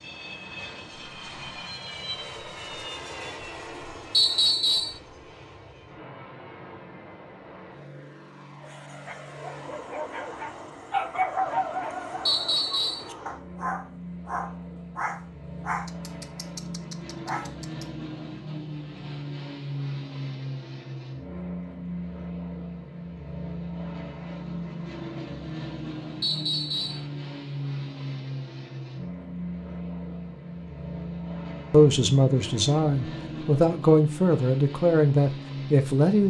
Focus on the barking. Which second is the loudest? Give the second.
11 s.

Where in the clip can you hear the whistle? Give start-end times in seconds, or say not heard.
4.1-5.0, 12.2-13.1, 26.2-27.1.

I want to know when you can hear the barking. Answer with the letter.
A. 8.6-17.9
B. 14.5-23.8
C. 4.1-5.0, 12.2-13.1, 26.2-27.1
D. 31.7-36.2
A.